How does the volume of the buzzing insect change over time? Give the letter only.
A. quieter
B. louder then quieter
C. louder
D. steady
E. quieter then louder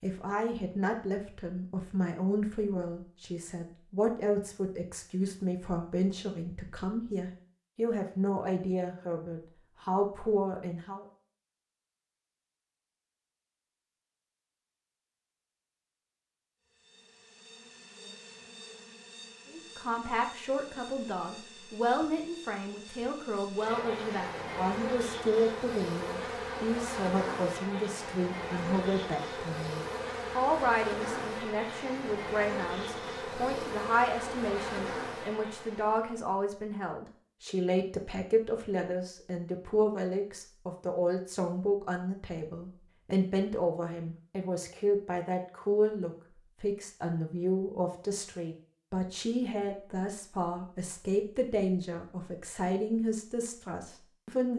C.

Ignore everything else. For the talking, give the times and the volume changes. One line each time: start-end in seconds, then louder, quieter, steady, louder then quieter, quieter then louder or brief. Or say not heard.
0.0-11.1 steady
19.5-54.5 steady.